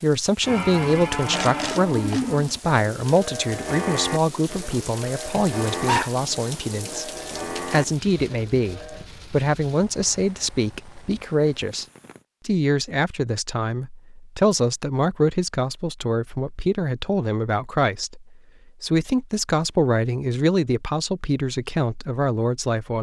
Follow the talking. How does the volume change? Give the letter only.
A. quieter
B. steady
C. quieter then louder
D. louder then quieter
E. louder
B.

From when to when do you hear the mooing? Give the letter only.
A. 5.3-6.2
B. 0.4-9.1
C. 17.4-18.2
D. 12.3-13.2
B.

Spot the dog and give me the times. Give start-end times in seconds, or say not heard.
5.3-6.2.